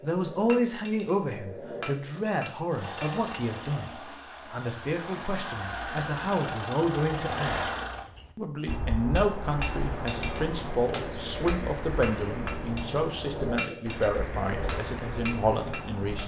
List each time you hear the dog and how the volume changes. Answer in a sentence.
You can't hear the dog here.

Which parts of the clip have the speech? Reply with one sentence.
The speech can be heard from 0.0 to 7.7 s and from 8.3 to 16.2 s.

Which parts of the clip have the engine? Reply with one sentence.
The engine can be heard from 2.7 to 8.1 s.